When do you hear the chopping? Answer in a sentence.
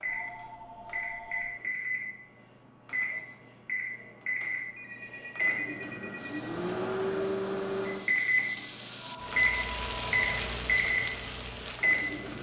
You can't hear the chopping here.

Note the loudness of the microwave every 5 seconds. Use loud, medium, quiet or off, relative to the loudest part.
medium, loud, loud.